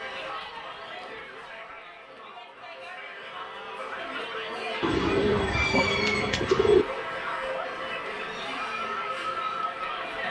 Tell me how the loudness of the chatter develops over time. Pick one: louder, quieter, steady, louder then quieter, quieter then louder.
louder.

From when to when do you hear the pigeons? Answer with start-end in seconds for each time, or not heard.
4.8-6.8.